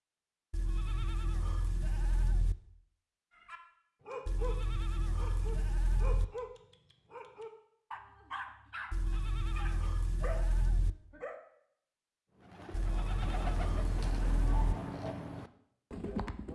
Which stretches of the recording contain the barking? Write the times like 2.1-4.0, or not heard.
3.3-11.4.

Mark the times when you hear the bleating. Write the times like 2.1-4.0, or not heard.
0.5-2.5, 4.2-6.2, 8.9-10.9, 12.7-14.8.